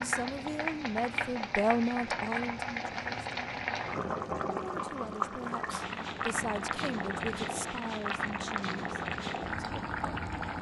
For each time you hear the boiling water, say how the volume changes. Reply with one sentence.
You can hear the boiling water from 0.0 to 10.5 s, at a steady volume.